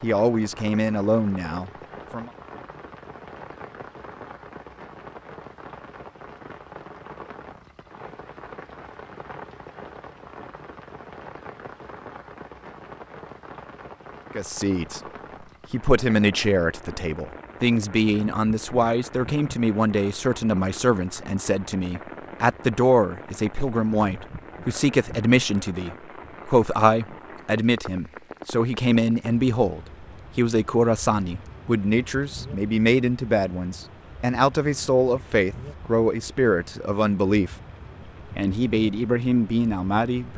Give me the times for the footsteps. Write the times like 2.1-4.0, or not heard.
not heard.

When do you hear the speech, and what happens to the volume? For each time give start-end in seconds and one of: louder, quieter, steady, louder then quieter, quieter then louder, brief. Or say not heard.
0.0-2.3 brief
14.3-15.0 brief
15.7-37.5 steady
38.4-40.3 brief.